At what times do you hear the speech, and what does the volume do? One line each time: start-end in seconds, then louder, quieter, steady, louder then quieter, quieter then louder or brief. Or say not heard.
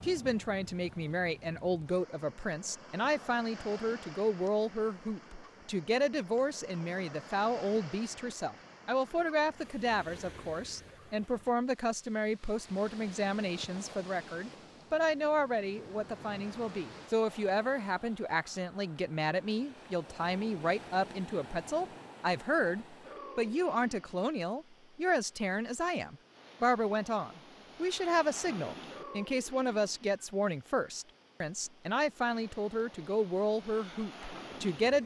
0.0-35.0 steady.